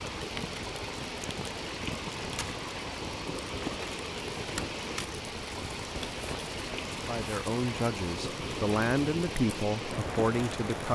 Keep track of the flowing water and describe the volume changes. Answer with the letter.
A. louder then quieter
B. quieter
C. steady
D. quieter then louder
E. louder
C.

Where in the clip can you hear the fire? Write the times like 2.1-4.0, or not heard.
0.0-10.9.